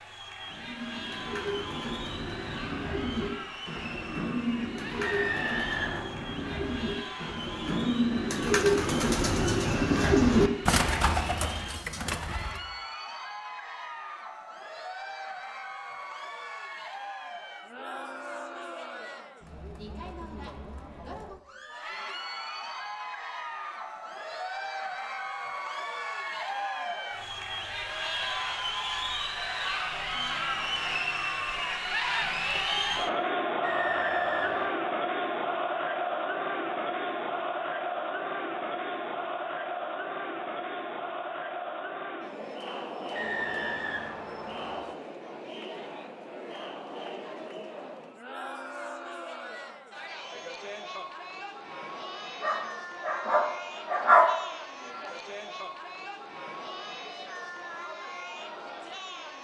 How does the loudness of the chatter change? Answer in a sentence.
The loudness of the chatter goes up, then down.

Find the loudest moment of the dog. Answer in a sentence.
The volume of the dog peaks at 54 seconds.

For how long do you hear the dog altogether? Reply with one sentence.
You can hear the dog for 2 seconds altogether.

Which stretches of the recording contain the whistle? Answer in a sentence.
The whistle can be heard from 5.0 to 6.0 s, from 33.6 to 34.6 s and from 43.1 to 44.9 s.